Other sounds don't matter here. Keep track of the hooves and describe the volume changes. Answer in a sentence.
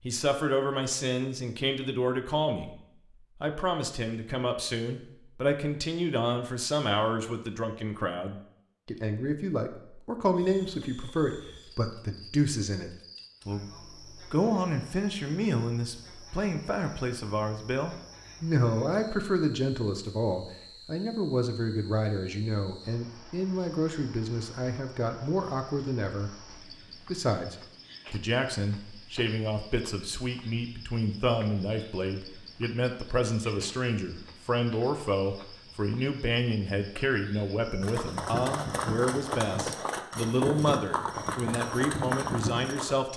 The loudness of the hooves stays about the same.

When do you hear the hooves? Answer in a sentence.
You can hear the hooves from 37.8 to 43.0 s.